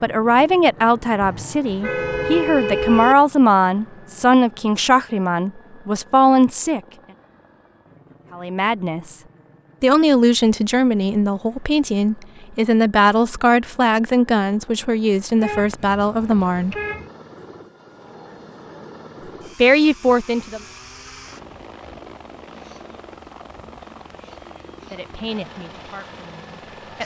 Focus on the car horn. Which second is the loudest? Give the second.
3 s.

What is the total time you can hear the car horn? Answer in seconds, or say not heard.
4 s.